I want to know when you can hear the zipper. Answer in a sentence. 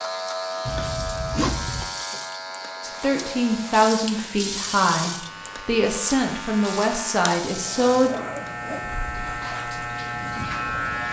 You can hear the zipper from 0.7 to 1.9 s and from 7.7 to 9.0 s.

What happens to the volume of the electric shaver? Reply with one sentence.
The loudness of the electric shaver goes down, then up.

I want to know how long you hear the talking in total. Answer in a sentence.
The talking can be heard for 5 seconds in total.